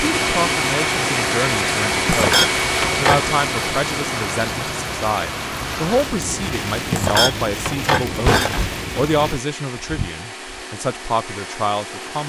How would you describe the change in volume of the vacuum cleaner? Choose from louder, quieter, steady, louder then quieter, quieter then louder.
quieter.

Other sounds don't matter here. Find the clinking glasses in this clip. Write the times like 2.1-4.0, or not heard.
2.0-3.2, 6.9-8.8.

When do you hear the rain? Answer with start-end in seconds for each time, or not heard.
0.0-9.4.